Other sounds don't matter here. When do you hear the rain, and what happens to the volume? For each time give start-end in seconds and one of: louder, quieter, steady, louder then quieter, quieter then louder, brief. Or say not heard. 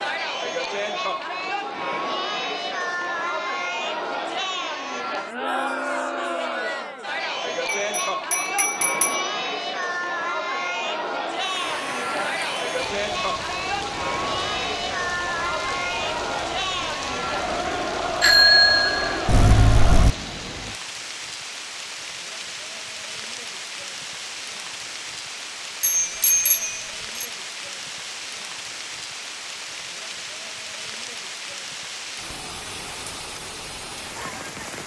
11.3-34.8 steady.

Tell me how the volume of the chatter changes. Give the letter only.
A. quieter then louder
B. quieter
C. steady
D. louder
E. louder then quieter
C.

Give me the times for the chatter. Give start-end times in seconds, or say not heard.
0.0-20.1.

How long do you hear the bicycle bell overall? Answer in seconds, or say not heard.
5 s.